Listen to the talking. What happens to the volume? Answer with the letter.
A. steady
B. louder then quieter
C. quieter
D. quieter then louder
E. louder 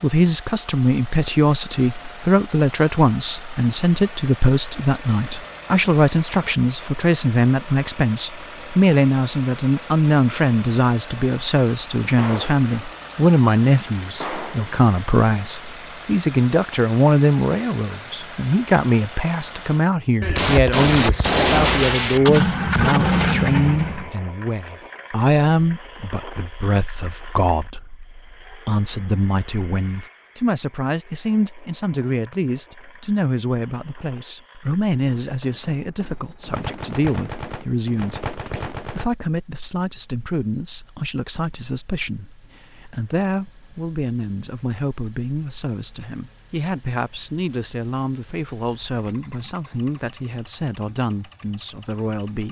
C.